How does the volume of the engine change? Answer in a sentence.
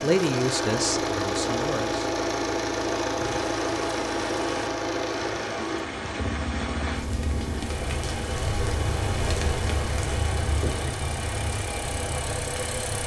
The loudness of the engine goes down.